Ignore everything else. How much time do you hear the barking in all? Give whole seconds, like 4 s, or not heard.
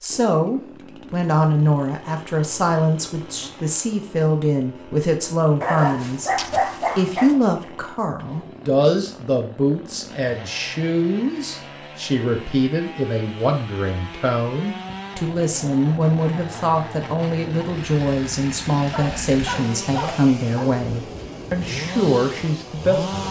4 s.